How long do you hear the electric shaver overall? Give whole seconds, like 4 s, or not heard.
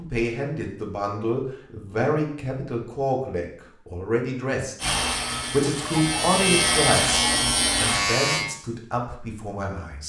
4 s.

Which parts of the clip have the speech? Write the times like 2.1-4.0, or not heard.
0.0-10.0.